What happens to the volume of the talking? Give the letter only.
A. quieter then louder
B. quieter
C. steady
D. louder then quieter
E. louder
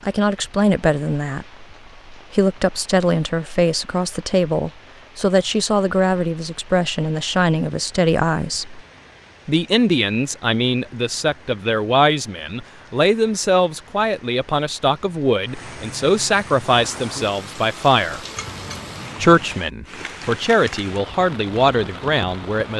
C.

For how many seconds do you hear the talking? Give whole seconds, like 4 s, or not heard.
21 s.